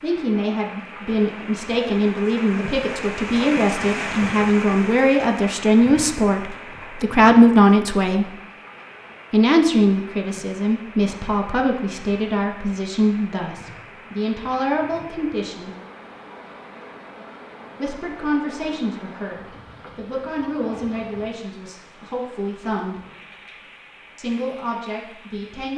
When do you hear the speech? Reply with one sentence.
The speech can be heard from 0.0 to 8.3 s, from 9.3 to 15.7 s, from 17.8 to 23.0 s and from 24.1 to 25.7 s.